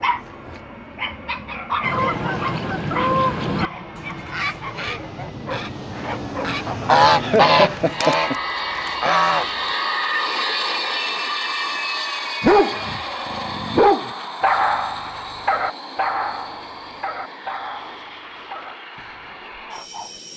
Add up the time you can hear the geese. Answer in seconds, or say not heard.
8 s.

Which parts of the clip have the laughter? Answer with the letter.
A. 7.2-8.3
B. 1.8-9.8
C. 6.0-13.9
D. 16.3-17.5
A.